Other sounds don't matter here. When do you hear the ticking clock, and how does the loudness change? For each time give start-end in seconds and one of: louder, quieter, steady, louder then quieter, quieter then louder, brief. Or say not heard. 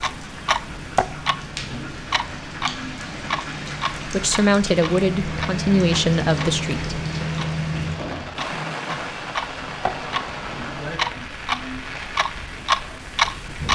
0.0-13.7 quieter then louder.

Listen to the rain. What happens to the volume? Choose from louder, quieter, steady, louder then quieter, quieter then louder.
louder then quieter.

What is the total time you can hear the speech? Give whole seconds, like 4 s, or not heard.
3 s.